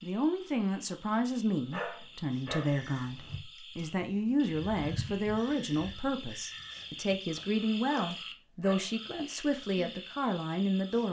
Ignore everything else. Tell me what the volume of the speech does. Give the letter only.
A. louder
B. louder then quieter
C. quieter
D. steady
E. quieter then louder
D.